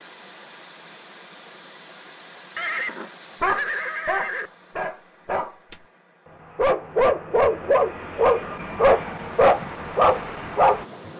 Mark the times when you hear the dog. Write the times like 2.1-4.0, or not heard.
3.4-5.8, 6.4-10.8.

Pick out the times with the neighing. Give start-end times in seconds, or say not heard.
2.5-4.5.